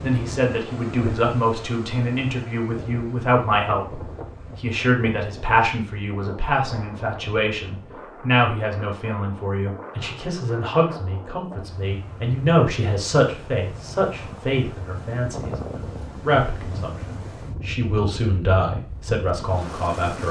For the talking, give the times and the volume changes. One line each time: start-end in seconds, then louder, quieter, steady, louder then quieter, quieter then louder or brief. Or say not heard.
0.0-20.2 steady.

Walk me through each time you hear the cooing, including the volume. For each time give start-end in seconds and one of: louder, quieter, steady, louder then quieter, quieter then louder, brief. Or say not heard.
not heard.